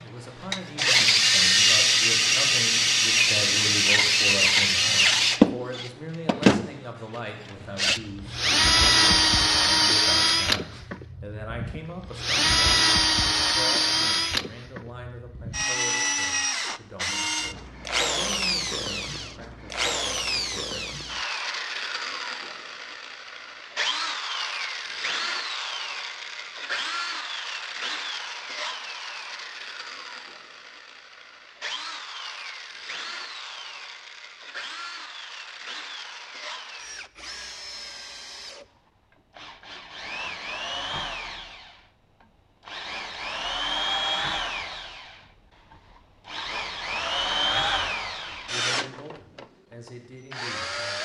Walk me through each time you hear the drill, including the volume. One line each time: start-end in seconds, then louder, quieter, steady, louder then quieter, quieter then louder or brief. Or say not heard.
0.5-6.8 steady
7.8-51.0 quieter then louder.